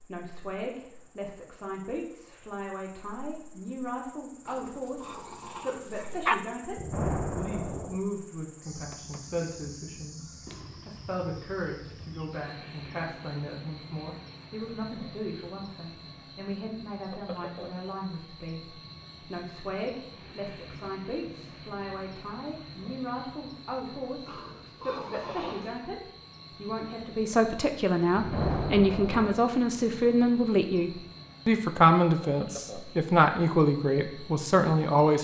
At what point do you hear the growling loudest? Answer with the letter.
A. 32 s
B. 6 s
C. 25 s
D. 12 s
B.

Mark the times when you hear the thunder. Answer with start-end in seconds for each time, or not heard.
6.8-8.0, 28.1-29.4.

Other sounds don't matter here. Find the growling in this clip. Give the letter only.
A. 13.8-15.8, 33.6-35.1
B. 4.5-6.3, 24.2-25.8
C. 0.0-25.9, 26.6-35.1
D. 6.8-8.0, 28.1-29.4
B.